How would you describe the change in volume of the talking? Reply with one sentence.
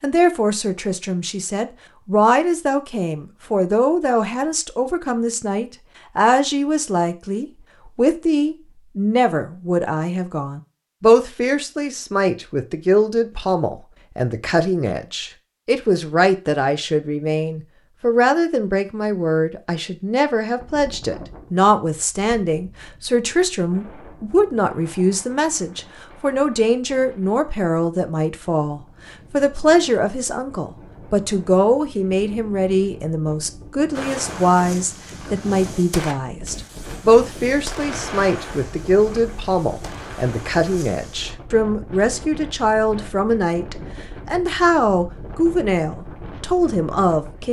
The volume of the talking stays about the same.